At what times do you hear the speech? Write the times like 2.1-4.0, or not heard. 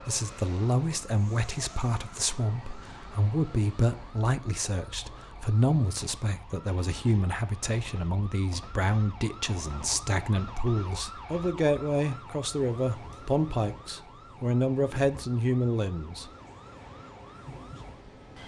0.1-16.3.